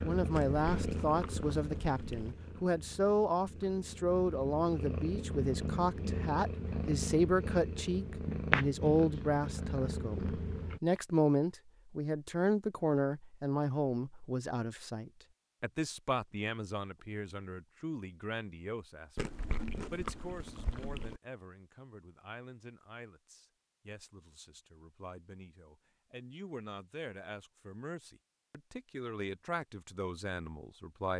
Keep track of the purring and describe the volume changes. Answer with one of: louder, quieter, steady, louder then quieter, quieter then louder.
quieter then louder.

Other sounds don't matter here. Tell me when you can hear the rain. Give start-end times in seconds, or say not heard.
not heard.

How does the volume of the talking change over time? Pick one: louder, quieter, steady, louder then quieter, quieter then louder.
quieter then louder.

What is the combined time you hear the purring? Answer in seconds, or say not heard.
11 s.